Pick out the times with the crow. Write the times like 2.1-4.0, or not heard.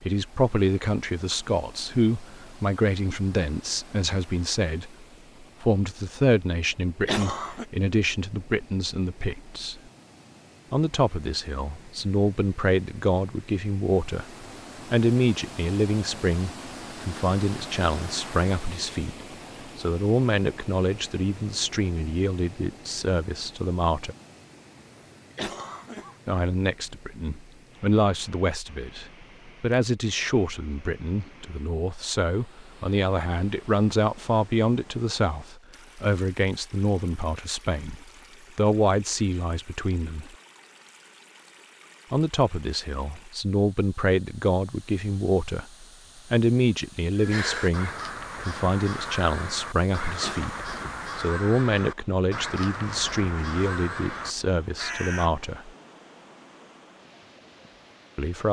47.1-55.4.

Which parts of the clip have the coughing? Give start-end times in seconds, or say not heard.
7.0-7.7, 25.4-26.1, 50.2-51.0.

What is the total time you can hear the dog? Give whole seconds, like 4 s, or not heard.
not heard.